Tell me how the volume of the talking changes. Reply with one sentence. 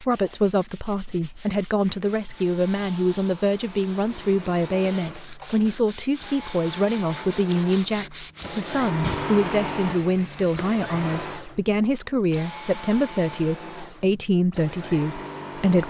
The loudness of the talking stays about the same.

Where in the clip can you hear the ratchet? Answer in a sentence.
The ratchet can't be heard in this clip.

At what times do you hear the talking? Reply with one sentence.
You can hear the talking from 0.0 to 15.8 s.